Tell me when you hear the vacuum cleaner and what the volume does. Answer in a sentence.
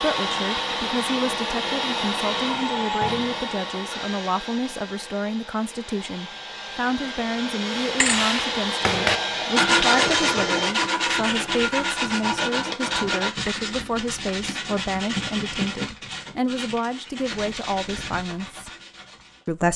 The vacuum cleaner can be heard from 0.0 to 10.8 s, getting quieter then louder.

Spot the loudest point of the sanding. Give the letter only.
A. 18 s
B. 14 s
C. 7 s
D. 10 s
D.